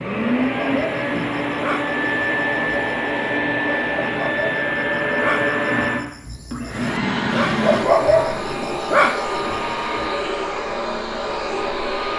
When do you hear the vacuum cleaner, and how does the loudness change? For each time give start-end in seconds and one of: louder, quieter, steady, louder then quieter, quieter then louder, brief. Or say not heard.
0.0-12.1 steady.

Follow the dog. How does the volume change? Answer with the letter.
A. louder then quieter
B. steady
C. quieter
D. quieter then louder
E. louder
D.